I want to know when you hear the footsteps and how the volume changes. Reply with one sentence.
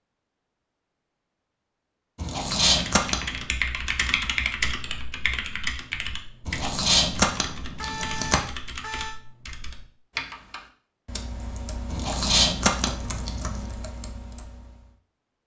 You can't hear the footsteps here.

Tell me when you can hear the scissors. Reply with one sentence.
The scissors can be heard from 2.2 to 3.1 s, from 6.5 to 8.4 s and from 11.9 to 13.6 s.